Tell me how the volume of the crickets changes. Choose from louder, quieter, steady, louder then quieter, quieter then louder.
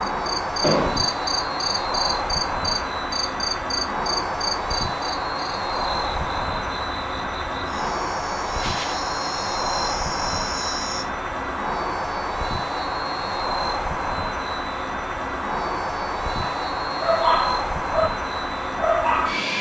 quieter then louder.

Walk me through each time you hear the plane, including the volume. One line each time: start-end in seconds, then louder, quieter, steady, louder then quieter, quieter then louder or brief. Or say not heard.
0.0-19.5 steady.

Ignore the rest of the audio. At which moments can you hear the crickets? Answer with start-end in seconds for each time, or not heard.
0.0-11.1.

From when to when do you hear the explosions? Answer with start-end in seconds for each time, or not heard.
0.6-1.1.